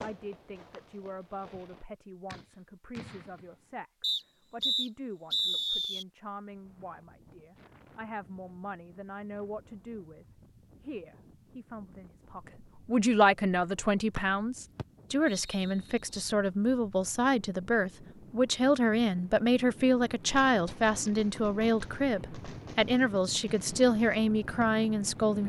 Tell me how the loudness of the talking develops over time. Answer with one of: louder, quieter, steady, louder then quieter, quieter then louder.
louder.